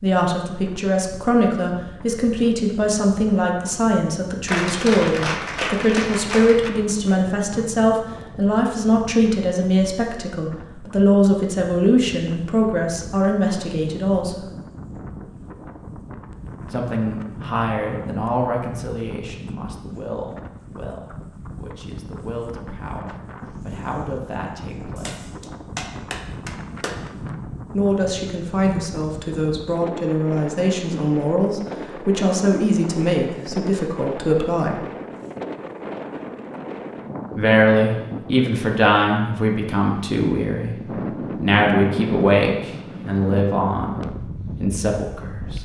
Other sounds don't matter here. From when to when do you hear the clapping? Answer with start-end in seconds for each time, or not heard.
4.5-6.7, 24.9-26.9.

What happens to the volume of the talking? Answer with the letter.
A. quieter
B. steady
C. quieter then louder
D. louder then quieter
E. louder
C.